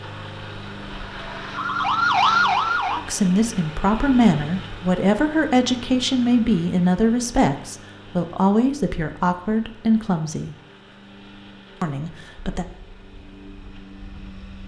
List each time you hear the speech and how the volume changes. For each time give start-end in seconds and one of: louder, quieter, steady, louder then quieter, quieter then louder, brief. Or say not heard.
3.0-10.6 steady
11.8-12.7 brief.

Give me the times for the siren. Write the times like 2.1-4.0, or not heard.
0.0-3.0.